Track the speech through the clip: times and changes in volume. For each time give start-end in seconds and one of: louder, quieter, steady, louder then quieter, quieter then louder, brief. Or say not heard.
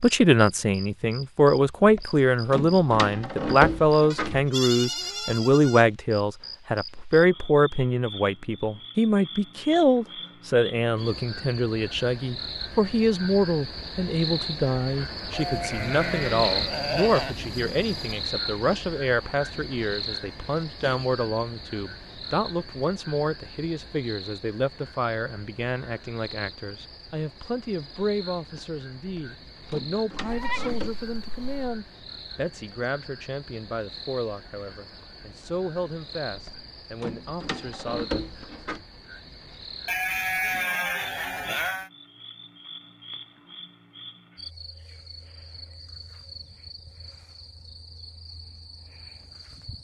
0.0-38.2 quieter.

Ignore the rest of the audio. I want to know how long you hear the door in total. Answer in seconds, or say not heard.
7 s.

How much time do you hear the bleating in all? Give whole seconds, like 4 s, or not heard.
8 s.